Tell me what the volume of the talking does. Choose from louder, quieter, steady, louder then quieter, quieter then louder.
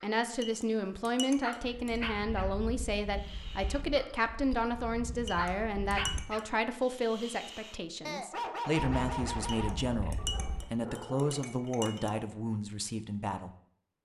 steady.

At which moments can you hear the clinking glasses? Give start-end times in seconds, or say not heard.
0.4-2.0, 5.2-6.5, 9.4-12.1.